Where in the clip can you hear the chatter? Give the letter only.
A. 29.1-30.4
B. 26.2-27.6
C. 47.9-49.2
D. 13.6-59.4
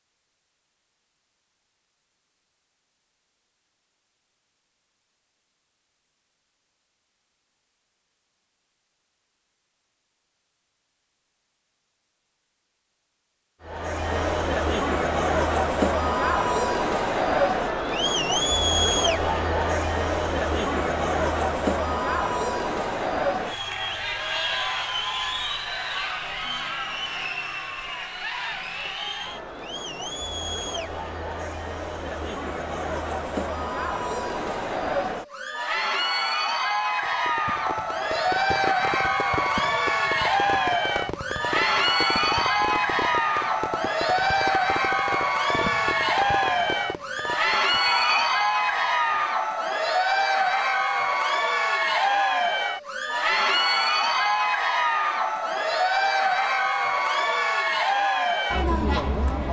D.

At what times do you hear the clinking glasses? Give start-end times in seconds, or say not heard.
47.9-49.2.